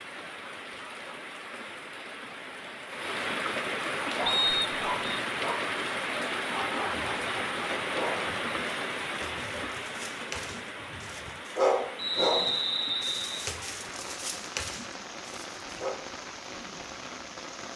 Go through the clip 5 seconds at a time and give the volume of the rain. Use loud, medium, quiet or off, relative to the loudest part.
loud, loud, medium, medium.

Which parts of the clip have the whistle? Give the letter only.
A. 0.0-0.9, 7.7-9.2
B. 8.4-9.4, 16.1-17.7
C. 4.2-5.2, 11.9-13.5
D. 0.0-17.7
C.